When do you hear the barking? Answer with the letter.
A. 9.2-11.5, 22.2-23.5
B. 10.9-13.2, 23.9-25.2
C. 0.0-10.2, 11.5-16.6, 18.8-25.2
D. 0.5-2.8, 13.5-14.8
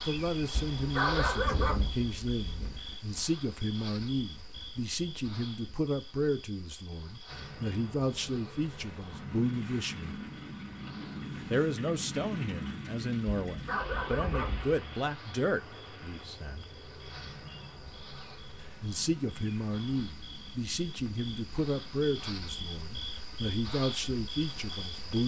D.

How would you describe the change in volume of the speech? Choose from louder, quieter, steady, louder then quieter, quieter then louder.
steady.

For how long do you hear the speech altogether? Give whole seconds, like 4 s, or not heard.
22 s.